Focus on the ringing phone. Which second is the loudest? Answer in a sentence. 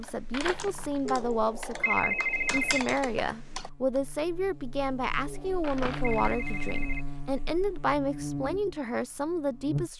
The loudest moment of the ringing phone is at 2 seconds.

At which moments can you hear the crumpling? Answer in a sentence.
You can hear the crumpling from 0.3 to 1.0 s and from 5.6 to 6.3 s.